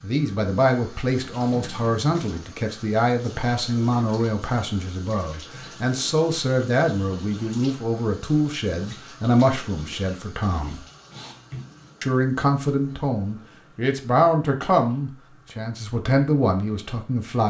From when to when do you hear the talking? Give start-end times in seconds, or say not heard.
0.0-10.8, 12.0-17.4.